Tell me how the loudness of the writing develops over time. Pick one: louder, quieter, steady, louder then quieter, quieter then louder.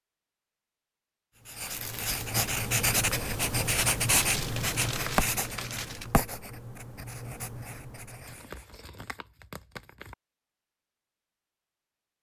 quieter.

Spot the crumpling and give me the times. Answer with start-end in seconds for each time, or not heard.
1.7-2.4, 4.2-6.1, 8.2-10.2.